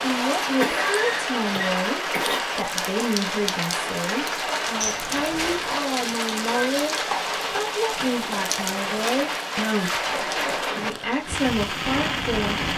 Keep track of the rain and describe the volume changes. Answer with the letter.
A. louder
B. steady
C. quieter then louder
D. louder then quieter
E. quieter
B.